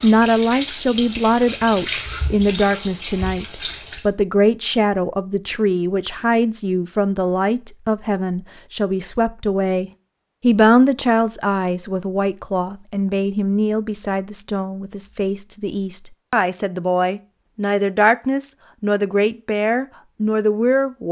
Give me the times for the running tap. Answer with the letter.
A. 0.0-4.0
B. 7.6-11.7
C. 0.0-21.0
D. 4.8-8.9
A.